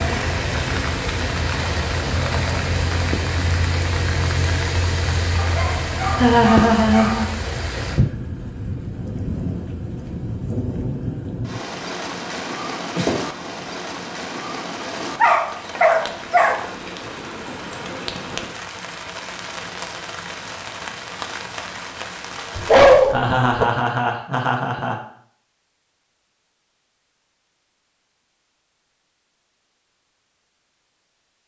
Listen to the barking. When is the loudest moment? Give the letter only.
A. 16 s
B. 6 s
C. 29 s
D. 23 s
D.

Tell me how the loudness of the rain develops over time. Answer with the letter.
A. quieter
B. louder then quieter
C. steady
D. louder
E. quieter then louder
A.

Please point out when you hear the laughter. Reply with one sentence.
You can hear the laughter from 6.2 to 7.3 s, from 12.9 to 13.6 s and from 23.1 to 25.0 s.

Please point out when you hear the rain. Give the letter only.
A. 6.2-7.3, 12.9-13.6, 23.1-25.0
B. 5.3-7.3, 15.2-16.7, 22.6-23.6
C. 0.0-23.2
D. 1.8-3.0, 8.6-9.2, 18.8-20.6
C.